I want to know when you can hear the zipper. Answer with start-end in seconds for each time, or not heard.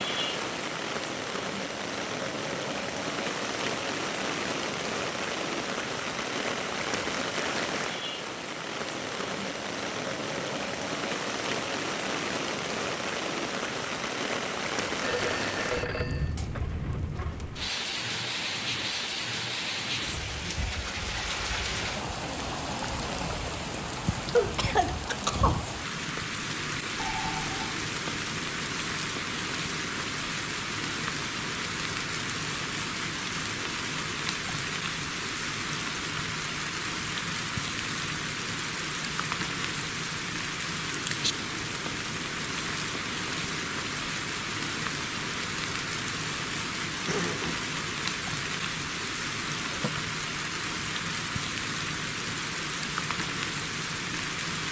not heard.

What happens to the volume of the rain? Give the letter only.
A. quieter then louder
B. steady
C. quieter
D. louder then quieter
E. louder
B.